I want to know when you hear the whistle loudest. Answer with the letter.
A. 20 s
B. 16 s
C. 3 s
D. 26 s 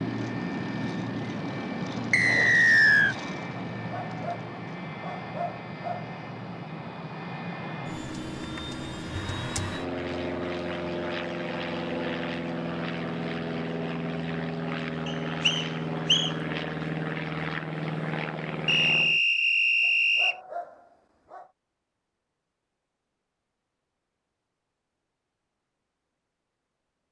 C.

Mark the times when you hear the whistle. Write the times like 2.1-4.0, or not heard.
2.1-3.1, 15.1-16.3, 18.6-20.4.